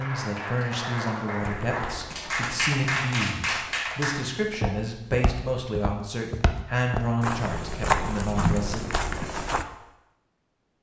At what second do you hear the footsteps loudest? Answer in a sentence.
The loudest moment of the footsteps is at 8 seconds.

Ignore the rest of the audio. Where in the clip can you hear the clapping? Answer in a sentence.
You can hear the clapping from 0.0 to 4.2 s.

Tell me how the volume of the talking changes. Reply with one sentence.
The volume of the talking stays about the same.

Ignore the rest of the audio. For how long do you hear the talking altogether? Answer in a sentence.
You can hear the talking for 9 seconds altogether.